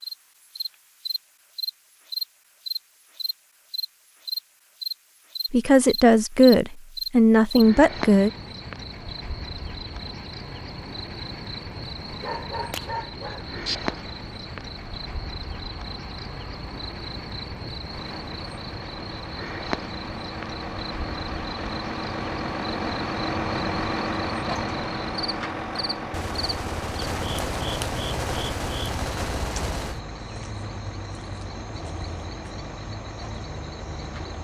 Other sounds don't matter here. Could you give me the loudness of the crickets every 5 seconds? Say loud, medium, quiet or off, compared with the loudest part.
loud, loud, medium, medium, medium, medium, medium.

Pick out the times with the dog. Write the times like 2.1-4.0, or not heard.
12.2-13.8.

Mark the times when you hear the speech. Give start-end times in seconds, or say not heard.
5.5-8.3.